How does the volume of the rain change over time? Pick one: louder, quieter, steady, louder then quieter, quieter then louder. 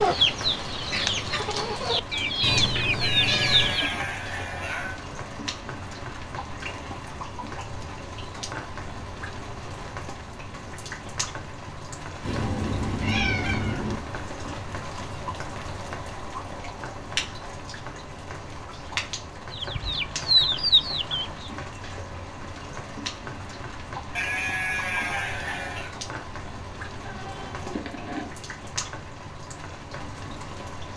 steady.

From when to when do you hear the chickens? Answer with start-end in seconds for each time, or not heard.
0.0-4.0, 19.5-21.5.